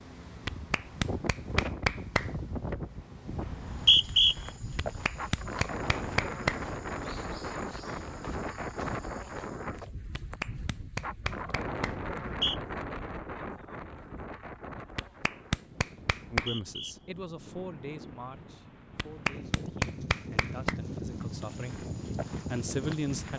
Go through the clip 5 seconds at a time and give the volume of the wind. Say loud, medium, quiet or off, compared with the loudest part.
loud, loud, loud, medium, loud.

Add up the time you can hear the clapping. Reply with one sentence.
You can hear the clapping for 9 seconds altogether.